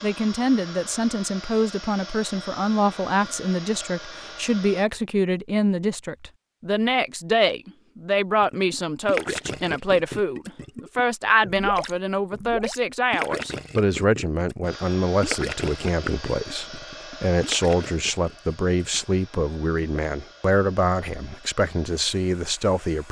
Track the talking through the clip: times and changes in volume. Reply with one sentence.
You can hear the talking from 0.0 to 23.0 s, at a steady volume.